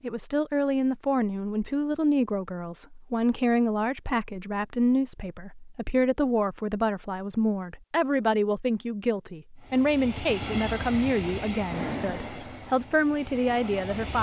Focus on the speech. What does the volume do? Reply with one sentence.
The loudness of the speech stays about the same.